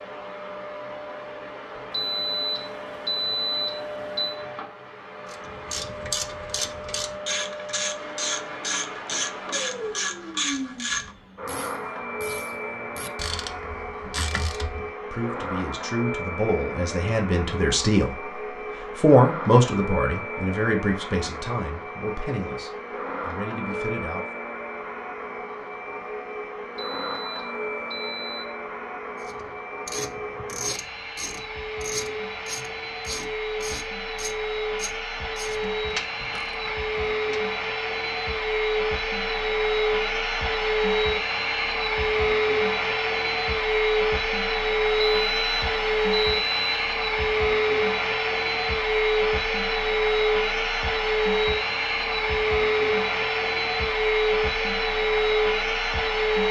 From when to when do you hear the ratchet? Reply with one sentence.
You can hear the ratchet from 5.3 to 14.9 s and from 29.2 to 37.4 s.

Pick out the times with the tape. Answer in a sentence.
You can't hear the tape here.